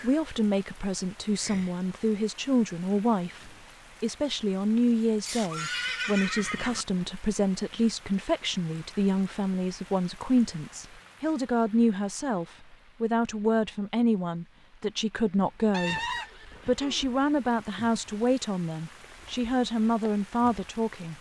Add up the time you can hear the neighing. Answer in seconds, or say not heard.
3 s.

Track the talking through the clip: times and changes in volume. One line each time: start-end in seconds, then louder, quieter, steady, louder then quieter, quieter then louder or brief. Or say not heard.
0.0-21.1 steady.